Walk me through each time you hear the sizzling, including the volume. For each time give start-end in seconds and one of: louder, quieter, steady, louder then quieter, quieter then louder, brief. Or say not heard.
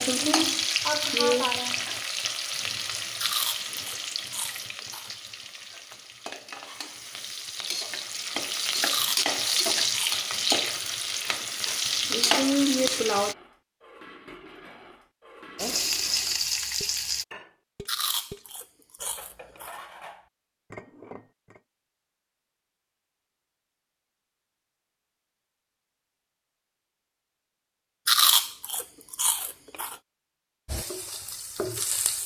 0.0-13.3 quieter then louder
15.6-17.2 brief
30.6-32.2 brief.